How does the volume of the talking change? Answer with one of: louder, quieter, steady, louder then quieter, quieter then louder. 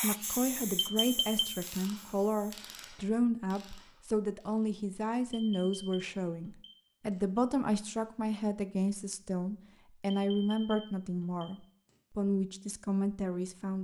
steady.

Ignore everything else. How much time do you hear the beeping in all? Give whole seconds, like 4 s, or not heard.
5 s.